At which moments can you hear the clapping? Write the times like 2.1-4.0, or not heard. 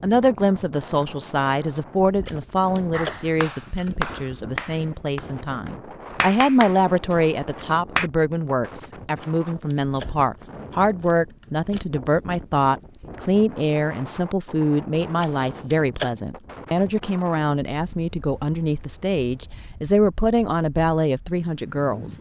2.9-8.1.